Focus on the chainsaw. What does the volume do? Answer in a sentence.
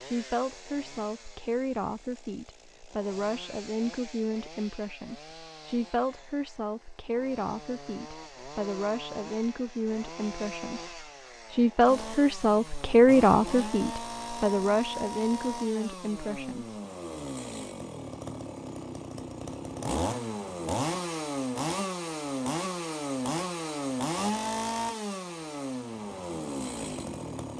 The loudness of the chainsaw goes up.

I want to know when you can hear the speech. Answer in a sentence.
The speech can be heard from 0.0 to 16.8 s.